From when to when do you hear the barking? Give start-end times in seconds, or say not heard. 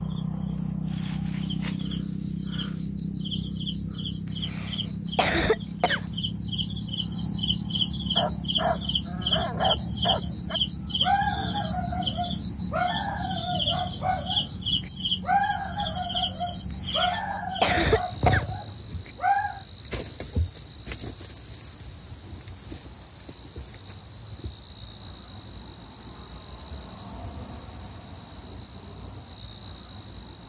8.2-19.6.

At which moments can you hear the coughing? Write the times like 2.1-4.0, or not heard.
4.2-6.0, 16.7-18.4.